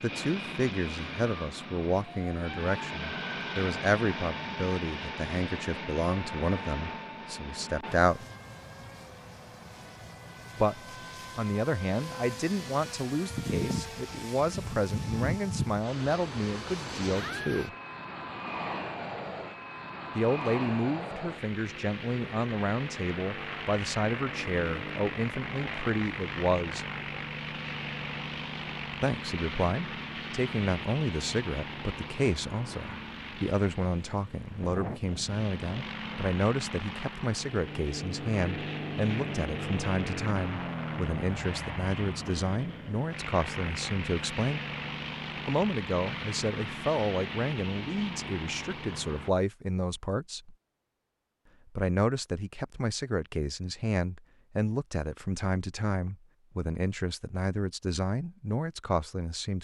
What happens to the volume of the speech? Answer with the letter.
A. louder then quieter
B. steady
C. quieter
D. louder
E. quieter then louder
B.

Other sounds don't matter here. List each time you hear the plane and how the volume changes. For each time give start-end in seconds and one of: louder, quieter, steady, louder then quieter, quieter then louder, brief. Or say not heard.
0.0-49.3 steady.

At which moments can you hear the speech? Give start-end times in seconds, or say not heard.
0.0-8.2, 10.6-17.8, 20.1-26.9, 29.0-44.6, 45.5-50.5, 51.8-59.5.